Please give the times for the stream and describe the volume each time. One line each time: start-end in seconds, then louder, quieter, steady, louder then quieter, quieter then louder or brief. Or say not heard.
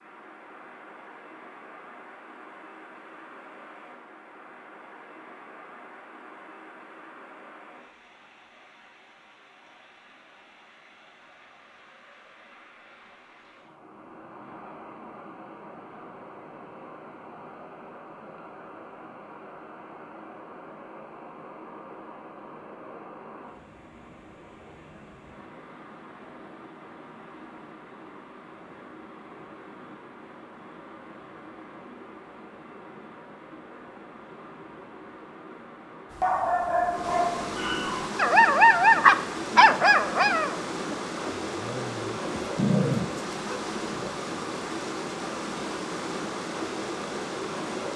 0.0-47.9 louder.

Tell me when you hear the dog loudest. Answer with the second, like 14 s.
39 s.